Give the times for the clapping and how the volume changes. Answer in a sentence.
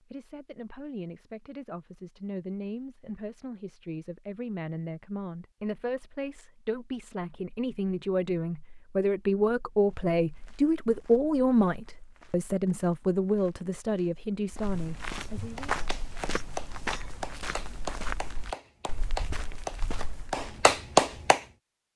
You can hear the clapping from 15.6 to 21.4 s, getting louder.